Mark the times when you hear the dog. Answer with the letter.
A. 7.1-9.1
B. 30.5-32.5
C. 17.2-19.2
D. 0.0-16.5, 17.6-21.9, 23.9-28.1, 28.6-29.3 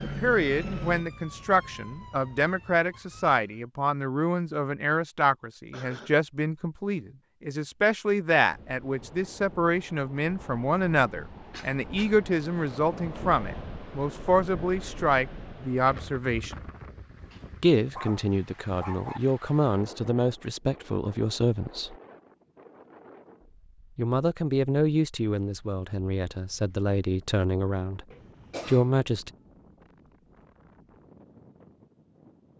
C.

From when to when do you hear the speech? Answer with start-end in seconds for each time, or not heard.
0.0-16.5, 17.6-21.9, 23.9-28.1, 28.6-29.3.